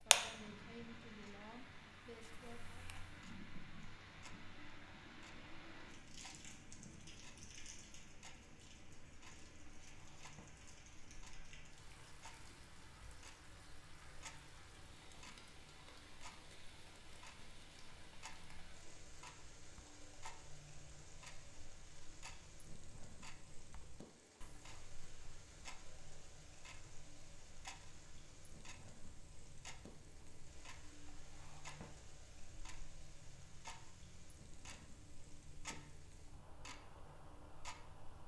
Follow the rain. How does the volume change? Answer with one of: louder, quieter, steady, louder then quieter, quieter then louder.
quieter.